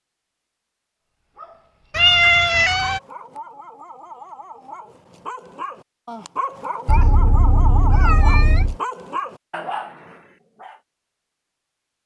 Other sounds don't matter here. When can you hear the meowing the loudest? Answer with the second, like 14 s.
2 s.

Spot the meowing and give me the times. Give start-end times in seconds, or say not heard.
1.9-3.0, 6.8-8.8.